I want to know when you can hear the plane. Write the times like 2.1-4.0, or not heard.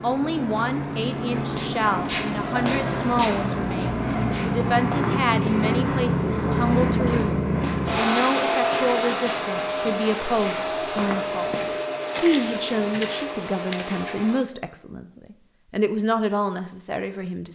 0.0-14.4.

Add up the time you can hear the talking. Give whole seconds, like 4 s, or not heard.
17 s.